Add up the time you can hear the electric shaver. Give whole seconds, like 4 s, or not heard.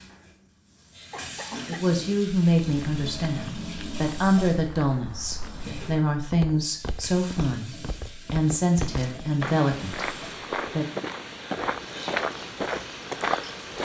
not heard.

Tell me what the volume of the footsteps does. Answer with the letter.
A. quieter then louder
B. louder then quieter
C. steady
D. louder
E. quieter
D.